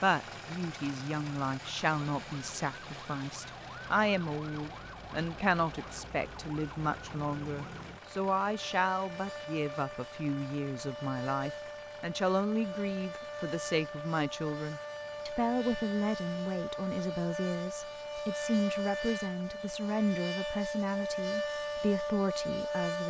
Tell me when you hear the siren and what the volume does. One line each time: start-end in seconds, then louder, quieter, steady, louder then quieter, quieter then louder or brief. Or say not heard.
0.0-23.0 louder.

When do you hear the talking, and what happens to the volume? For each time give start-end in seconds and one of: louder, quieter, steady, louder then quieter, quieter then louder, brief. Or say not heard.
0.0-23.0 steady.